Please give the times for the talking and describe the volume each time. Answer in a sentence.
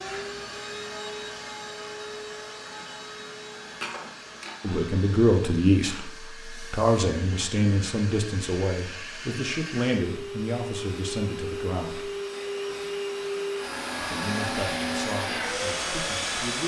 You can hear the talking from 4.6 to 12.1 s, getting quieter; and briefly from 14.0 to 16.6 s.